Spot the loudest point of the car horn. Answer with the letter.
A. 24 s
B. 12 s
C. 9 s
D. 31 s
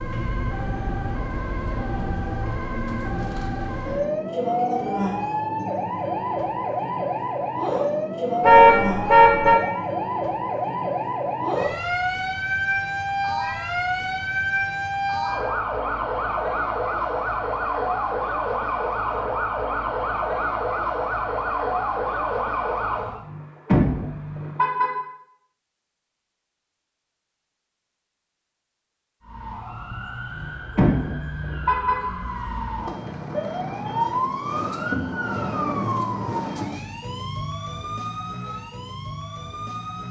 C.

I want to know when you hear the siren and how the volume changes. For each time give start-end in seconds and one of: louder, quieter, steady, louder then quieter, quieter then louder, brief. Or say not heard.
0.0-23.2 steady
29.2-40.0 louder then quieter.